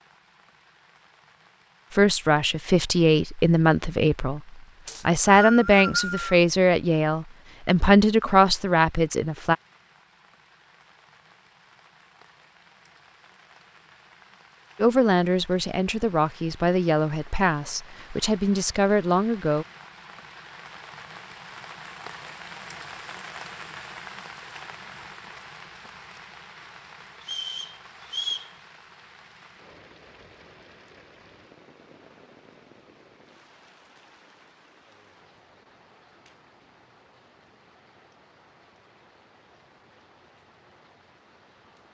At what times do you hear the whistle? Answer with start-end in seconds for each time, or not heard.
4.8-6.3, 27.2-28.5.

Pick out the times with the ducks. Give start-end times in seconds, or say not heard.
not heard.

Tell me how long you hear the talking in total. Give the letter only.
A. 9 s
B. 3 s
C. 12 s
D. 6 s
C.